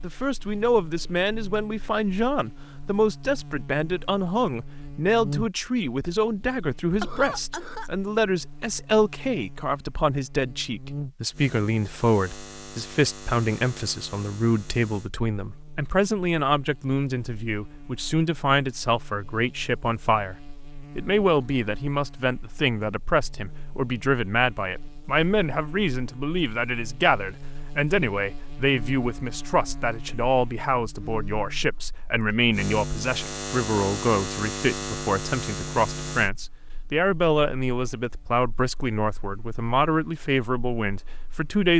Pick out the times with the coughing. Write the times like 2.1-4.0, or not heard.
7.0-7.9.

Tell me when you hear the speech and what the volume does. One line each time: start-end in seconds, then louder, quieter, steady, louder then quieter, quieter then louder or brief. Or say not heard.
0.0-41.7 steady.